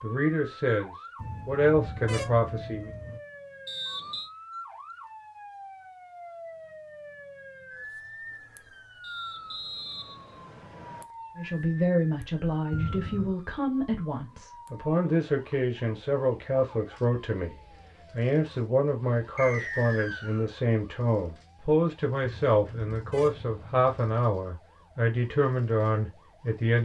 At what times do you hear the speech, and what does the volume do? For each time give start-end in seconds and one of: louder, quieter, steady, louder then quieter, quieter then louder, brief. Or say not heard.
0.0-2.9 brief
11.3-26.8 steady.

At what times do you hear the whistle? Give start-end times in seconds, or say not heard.
3.6-4.3, 9.0-11.1, 19.4-20.5.